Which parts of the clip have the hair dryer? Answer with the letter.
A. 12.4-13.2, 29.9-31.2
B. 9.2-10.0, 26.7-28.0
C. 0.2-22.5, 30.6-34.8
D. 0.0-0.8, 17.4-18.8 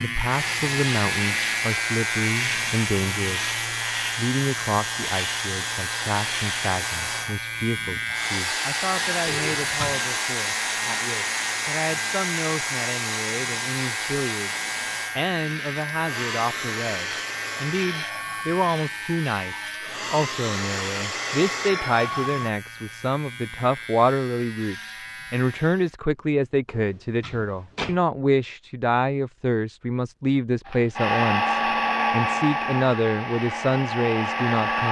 C.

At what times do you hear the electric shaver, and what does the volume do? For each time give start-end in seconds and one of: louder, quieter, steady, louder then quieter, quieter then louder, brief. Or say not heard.
0.0-25.9 quieter.